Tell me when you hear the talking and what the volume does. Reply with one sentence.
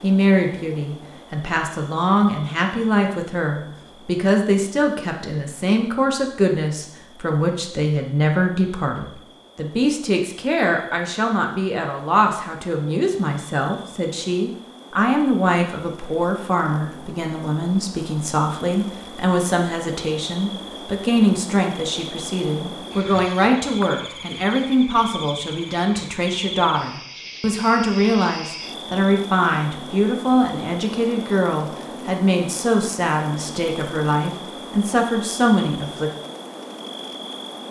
The talking can be heard from 0.0 to 36.1 s, at a steady volume.